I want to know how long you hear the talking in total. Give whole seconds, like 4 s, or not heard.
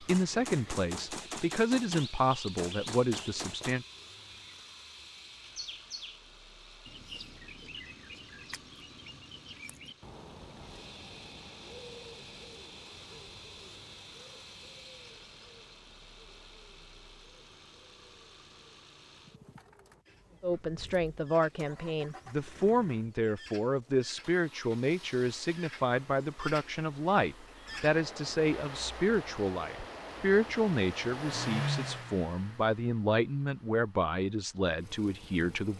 19 s.